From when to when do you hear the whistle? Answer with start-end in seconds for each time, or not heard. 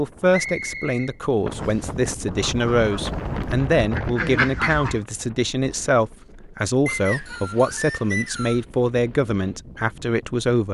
0.3-1.9, 6.8-8.7.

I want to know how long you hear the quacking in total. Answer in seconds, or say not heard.
3 s.